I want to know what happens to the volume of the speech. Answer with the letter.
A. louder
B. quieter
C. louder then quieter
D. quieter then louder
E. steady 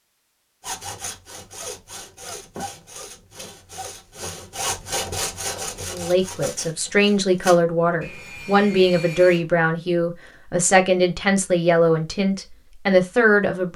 E.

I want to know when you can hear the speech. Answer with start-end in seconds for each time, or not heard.
5.8-13.7.